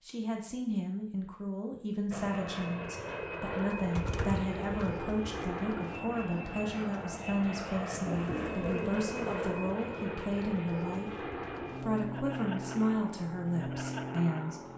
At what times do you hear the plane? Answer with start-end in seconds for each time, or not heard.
2.1-14.7.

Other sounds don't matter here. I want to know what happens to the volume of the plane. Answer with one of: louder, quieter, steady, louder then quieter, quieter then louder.
steady.